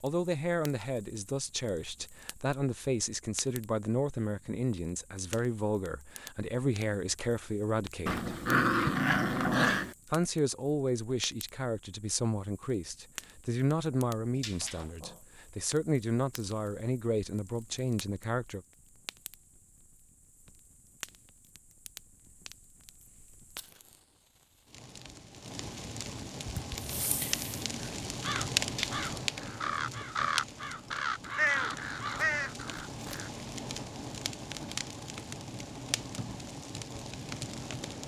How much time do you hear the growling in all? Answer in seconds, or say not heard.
3 s.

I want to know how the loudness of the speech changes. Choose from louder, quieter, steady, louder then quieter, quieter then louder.
steady.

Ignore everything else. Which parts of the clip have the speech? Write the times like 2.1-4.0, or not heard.
0.0-8.3, 10.1-18.6.